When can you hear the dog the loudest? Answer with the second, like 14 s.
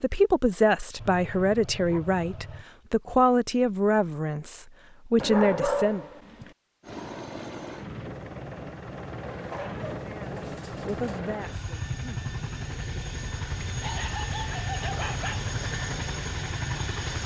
6 s.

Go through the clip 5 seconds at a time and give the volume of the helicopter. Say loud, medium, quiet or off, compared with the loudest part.
off, medium, loud, loud.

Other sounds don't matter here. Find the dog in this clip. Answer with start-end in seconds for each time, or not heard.
0.9-2.6, 5.2-6.5, 9.3-11.2, 13.8-15.4.